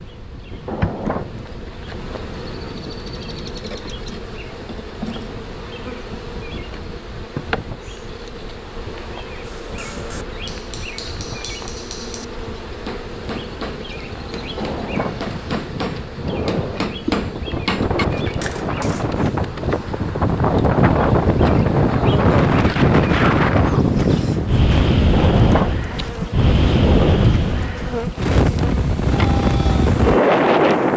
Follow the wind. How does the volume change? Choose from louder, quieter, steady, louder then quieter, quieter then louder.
louder.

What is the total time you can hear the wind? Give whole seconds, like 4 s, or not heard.
31 s.